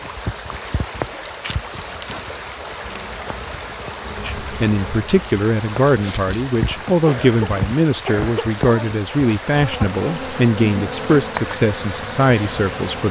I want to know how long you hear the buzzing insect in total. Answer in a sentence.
You can hear the buzzing insect for 13 seconds altogether.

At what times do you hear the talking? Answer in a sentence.
The talking can be heard from 4.2 to 13.0 s.